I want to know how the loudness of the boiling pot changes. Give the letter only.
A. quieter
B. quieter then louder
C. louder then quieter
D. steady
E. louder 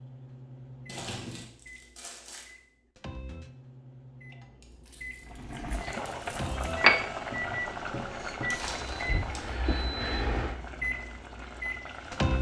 C.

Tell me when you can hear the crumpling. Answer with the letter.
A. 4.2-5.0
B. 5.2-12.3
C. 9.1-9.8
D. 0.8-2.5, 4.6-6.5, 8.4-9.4
D.